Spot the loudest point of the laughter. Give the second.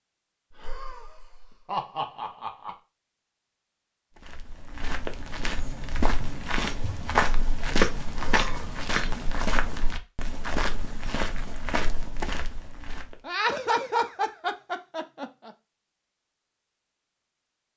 14 s.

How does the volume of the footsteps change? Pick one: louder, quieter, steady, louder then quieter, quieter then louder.
louder then quieter.